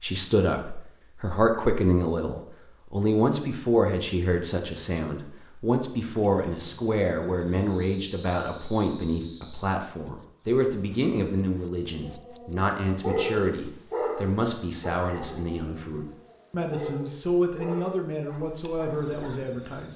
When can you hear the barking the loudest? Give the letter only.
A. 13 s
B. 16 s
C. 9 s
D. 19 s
A.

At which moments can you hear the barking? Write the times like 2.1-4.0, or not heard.
12.0-19.4.